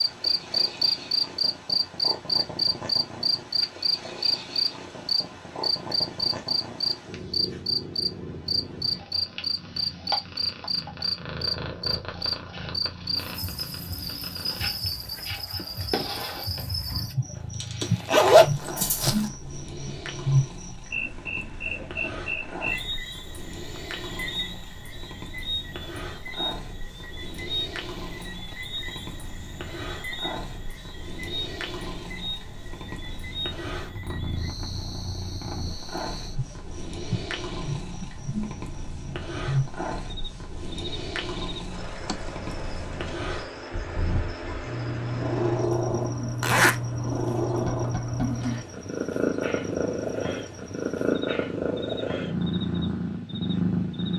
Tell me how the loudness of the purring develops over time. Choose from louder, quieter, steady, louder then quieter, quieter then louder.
louder.